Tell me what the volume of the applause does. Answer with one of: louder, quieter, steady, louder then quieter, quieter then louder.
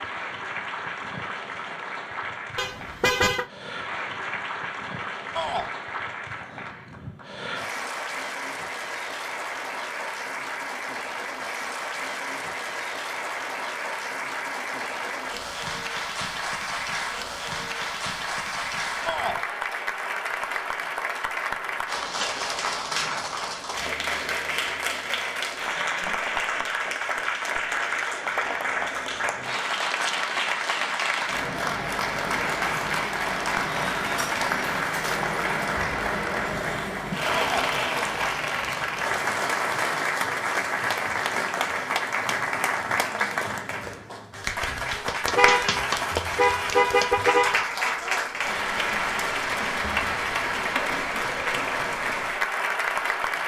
louder.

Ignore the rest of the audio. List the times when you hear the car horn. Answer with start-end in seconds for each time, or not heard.
2.5-3.5, 45.3-47.6.